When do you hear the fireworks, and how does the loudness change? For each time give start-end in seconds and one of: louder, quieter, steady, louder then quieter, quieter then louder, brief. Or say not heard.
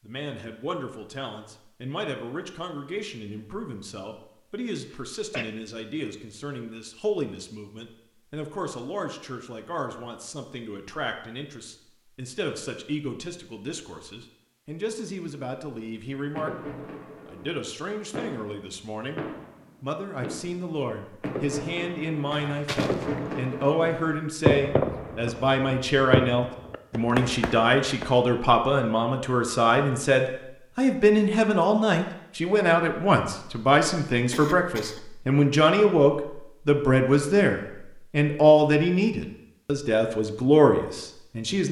16.2-28.1 louder.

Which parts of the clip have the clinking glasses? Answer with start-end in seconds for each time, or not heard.
not heard.